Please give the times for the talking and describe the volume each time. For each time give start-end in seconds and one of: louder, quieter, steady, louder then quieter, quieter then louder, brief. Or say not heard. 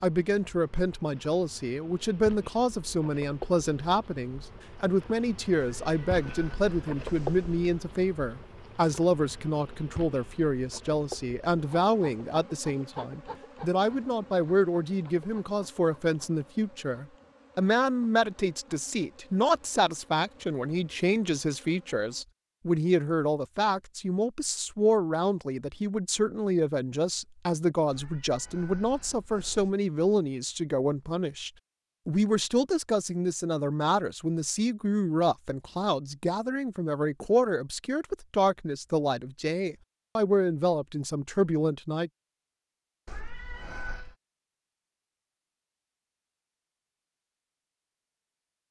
0.0-42.1 steady.